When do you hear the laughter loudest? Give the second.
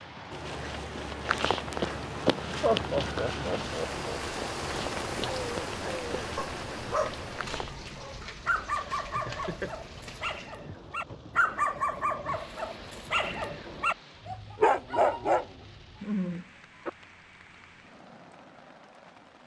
3 s.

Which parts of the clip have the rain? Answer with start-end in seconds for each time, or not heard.
0.0-19.4.